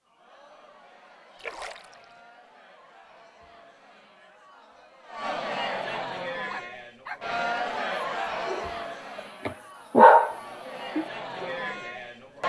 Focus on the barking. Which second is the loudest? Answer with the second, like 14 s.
10 s.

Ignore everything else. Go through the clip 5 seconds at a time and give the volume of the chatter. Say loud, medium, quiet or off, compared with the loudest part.
quiet, loud, loud.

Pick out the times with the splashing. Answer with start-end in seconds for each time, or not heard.
1.4-2.0.